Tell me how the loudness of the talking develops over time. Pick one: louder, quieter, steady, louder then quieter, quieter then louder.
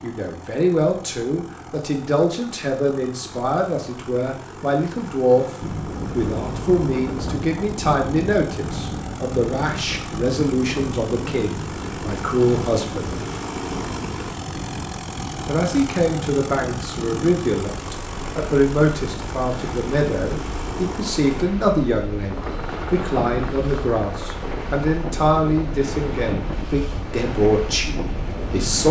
steady.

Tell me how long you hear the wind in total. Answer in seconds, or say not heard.
23 s.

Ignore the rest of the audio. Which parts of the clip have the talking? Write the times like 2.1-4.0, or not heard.
0.0-5.5, 6.2-13.2, 15.4-28.8.